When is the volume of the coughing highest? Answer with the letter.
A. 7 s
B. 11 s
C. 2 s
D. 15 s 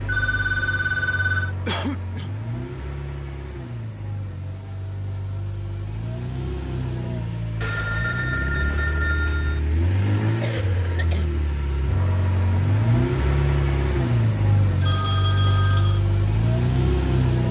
C.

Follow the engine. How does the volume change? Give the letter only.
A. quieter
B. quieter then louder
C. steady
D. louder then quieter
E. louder
E.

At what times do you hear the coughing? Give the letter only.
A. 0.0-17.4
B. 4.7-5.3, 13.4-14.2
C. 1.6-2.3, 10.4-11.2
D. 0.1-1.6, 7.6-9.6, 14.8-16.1
C.